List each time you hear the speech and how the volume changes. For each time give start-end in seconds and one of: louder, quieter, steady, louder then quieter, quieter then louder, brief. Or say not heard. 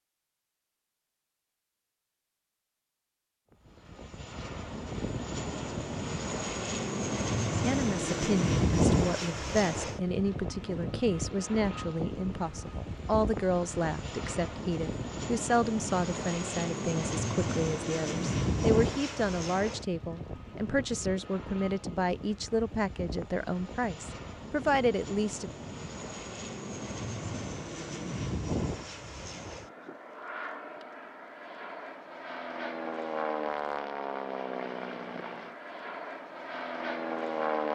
7.7-25.5 steady.